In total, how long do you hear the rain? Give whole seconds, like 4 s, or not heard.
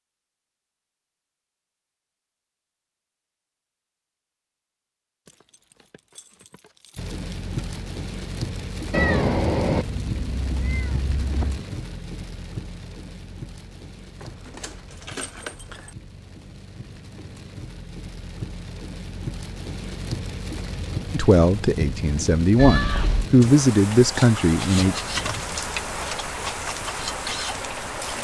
21 s.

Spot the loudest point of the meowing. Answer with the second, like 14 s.
9 s.